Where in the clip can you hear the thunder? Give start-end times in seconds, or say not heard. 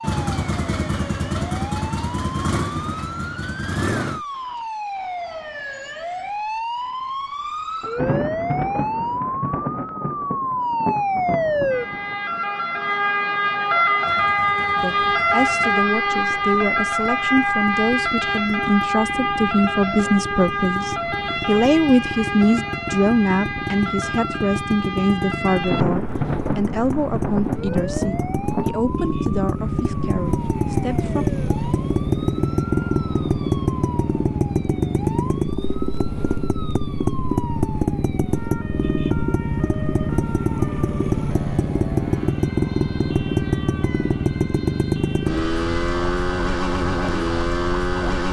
7.8-12.4, 25.5-28.8.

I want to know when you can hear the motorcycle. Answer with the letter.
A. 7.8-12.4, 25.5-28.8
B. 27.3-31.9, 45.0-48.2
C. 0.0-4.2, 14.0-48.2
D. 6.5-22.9
C.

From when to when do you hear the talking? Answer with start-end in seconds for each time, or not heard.
14.8-31.2.